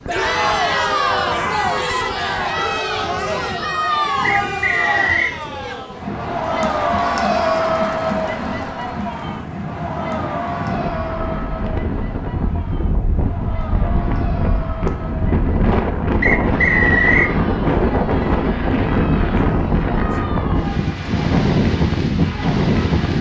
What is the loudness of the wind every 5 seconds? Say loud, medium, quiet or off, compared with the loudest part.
quiet, quiet, medium, loud, loud.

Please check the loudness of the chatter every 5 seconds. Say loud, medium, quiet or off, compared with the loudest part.
loud, loud, medium, quiet, quiet.